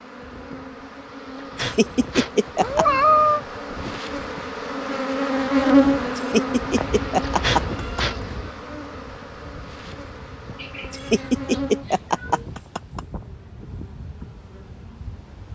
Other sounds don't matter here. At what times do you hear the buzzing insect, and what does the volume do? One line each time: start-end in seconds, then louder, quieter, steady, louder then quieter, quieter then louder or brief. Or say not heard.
0.0-15.5 louder then quieter.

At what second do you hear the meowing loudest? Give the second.
3 s.